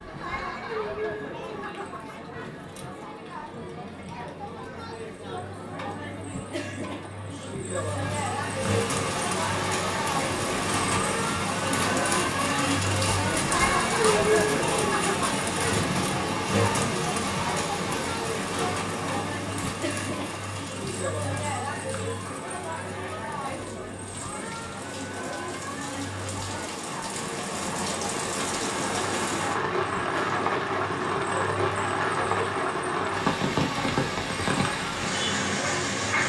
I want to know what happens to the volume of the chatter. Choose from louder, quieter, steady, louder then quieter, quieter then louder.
louder then quieter.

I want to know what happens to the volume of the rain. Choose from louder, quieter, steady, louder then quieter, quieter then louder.
quieter then louder.